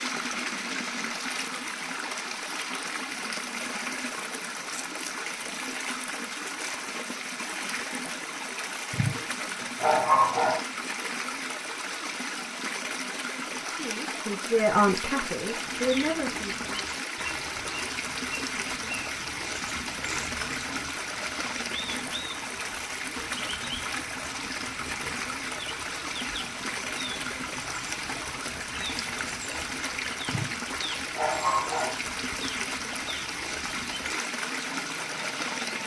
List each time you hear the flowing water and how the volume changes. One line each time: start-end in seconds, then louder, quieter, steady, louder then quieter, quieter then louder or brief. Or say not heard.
0.0-35.8 steady.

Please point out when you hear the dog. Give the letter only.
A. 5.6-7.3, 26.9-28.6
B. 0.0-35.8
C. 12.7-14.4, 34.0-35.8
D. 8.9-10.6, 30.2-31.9
D.